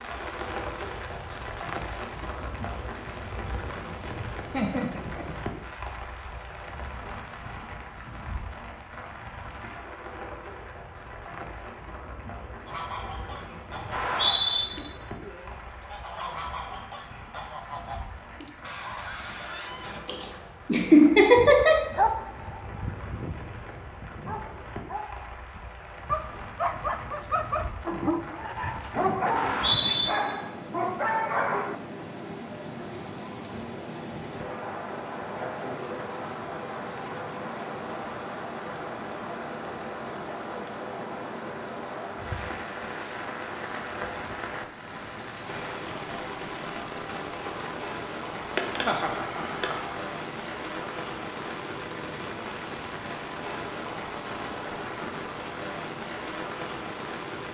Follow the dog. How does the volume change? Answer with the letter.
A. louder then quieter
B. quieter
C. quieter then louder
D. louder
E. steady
C.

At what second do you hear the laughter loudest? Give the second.
21 s.